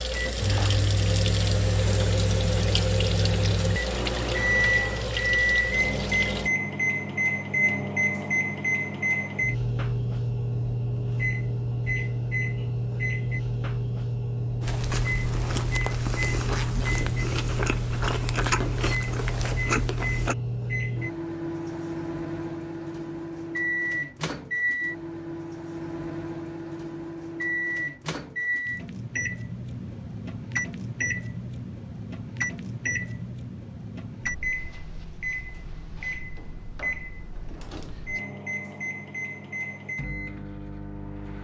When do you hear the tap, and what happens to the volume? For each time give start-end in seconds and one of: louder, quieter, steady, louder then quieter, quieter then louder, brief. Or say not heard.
0.0-6.5 steady.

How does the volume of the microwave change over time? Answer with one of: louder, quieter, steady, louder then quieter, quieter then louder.
quieter.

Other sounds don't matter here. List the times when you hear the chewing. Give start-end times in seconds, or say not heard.
14.6-20.4.